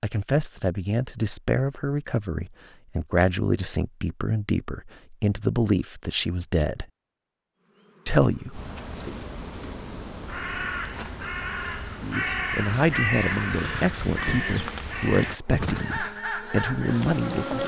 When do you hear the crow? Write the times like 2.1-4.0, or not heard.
8.5-17.1.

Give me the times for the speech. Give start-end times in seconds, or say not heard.
0.0-6.8, 8.1-9.2, 12.0-17.6.